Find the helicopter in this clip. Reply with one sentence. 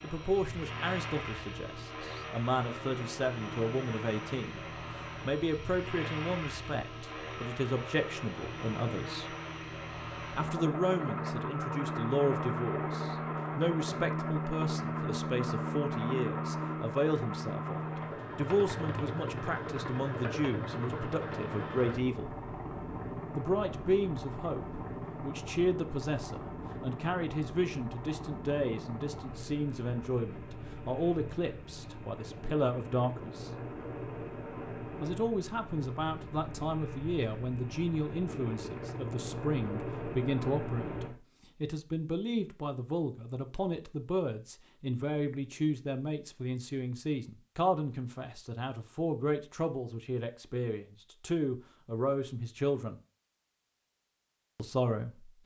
The helicopter can be heard from 0.0 to 41.1 s.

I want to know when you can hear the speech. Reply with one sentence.
You can hear the speech from 0.0 to 9.3 s, from 10.3 to 22.4 s, from 23.4 to 33.5 s, from 35.0 to 53.0 s and from 54.5 to 55.3 s.